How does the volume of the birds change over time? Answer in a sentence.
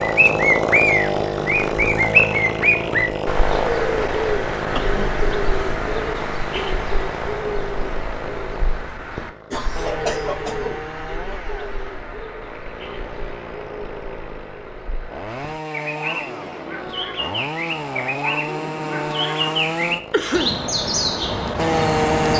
The loudness of the birds goes down, then up.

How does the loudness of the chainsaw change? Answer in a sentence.
The loudness of the chainsaw goes down, then up.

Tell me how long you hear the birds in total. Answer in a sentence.
You can hear the birds for 22 seconds altogether.